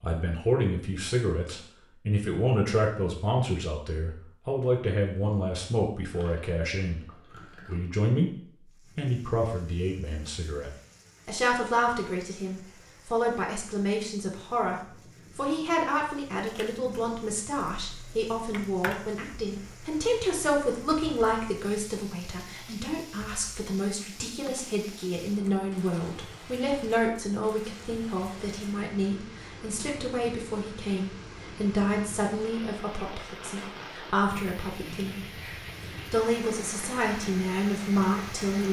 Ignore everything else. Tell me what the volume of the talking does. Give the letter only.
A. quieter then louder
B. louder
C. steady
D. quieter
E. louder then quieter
C.